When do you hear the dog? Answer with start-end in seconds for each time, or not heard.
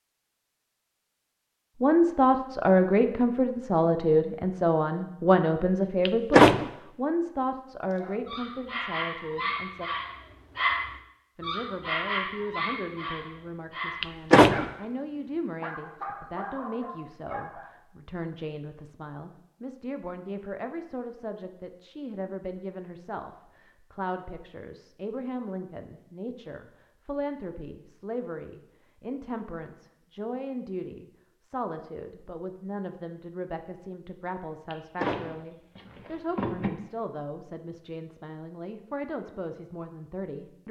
7.9-17.7.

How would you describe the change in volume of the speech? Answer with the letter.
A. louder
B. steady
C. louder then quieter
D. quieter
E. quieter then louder
D.